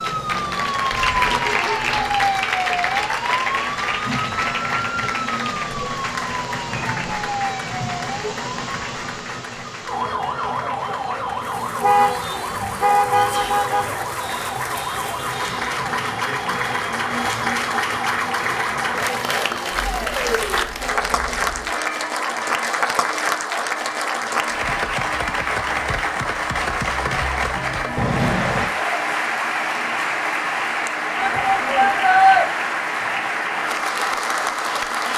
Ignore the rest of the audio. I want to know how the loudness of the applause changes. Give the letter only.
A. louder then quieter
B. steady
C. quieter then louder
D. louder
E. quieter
C.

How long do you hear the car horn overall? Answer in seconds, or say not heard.
4 s.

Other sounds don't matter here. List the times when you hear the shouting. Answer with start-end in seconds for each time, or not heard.
31.1-32.5.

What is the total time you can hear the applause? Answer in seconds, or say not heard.
35 s.